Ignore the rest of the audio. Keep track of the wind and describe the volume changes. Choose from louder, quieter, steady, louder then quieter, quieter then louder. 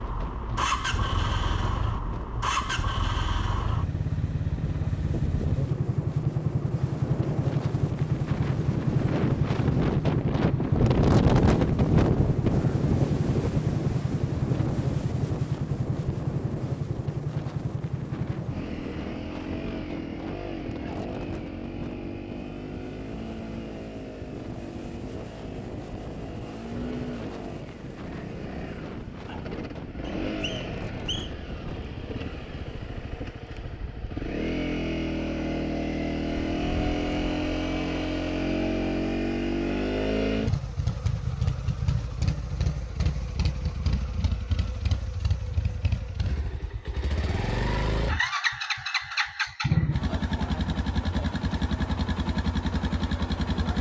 louder then quieter.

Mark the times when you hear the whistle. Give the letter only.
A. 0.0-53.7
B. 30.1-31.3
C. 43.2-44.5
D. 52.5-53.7
B.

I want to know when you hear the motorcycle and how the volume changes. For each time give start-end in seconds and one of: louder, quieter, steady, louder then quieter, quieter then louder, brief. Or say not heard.
0.0-53.7 quieter then louder.